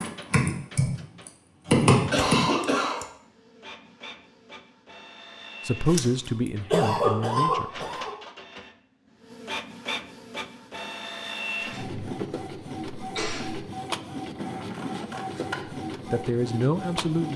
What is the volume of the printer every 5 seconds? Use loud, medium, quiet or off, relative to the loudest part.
medium, medium, loud, loud.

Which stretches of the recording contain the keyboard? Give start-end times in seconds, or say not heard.
0.0-2.5.